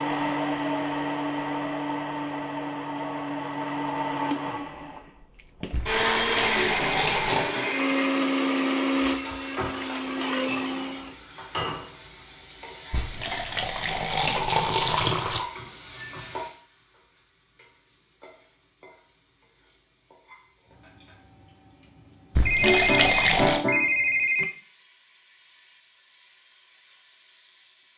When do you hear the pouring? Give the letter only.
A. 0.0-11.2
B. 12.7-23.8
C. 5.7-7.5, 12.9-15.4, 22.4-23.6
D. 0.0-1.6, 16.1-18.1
C.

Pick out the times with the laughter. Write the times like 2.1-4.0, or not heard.
not heard.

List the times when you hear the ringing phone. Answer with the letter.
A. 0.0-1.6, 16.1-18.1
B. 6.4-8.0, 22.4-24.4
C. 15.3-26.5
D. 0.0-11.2
B.